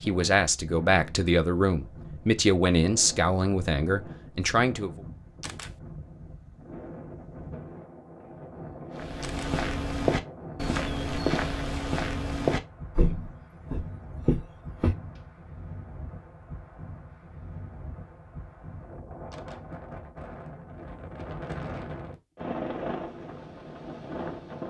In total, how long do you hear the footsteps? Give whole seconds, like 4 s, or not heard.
6 s.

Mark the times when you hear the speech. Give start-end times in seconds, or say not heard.
0.0-5.0.